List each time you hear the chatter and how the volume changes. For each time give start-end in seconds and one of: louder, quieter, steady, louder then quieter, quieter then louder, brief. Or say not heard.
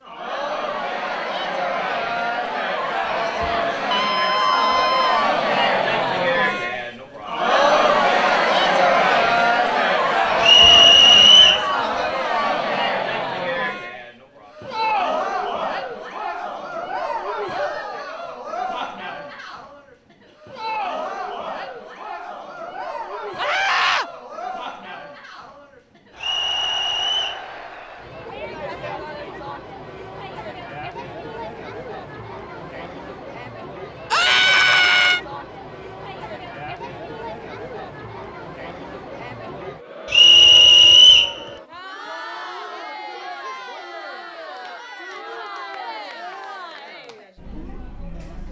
0.0-48.4 quieter.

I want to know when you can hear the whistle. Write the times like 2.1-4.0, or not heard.
10.4-11.7, 26.1-27.4, 40.1-41.4.